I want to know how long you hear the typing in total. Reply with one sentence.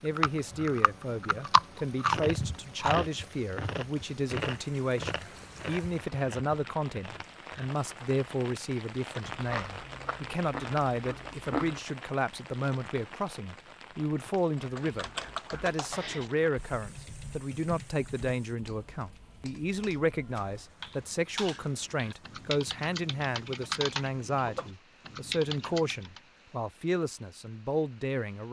The typing can be heard for 12 seconds in total.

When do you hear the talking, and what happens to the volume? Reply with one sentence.
You can hear the talking from 0.0 to 28.4 s, at a steady volume.